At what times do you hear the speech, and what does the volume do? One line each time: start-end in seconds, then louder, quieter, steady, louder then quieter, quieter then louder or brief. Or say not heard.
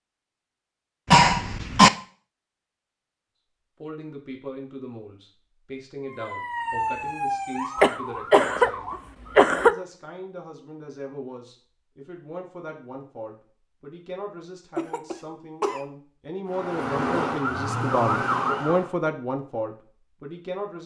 3.8-20.8 louder.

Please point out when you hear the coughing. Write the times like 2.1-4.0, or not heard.
1.1-1.9, 7.8-8.7, 9.3-9.8, 14.8-15.8.